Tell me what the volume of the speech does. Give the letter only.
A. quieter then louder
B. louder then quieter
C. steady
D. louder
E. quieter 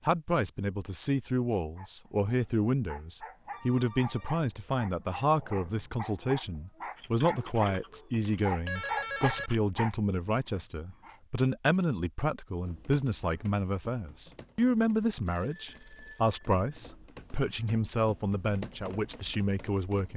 C.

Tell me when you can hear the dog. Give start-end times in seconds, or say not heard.
1.8-11.2.